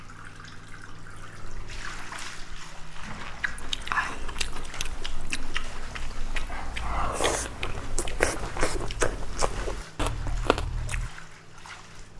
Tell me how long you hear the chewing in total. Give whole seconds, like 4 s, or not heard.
8 s.